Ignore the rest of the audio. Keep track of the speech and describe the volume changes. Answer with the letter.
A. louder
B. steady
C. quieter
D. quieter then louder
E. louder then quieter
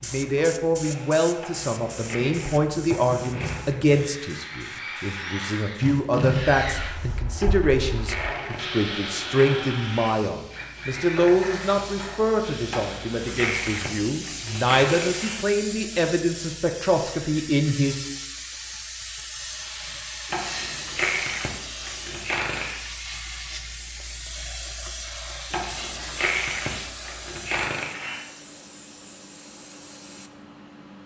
B.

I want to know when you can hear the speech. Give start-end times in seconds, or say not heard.
0.0-17.9.